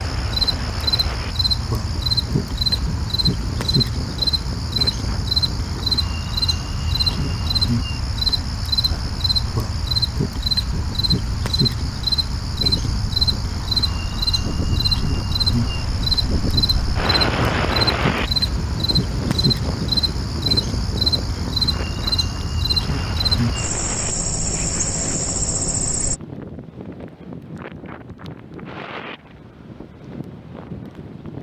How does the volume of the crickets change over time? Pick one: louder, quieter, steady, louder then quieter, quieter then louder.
steady.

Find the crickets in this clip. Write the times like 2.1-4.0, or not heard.
0.0-26.2.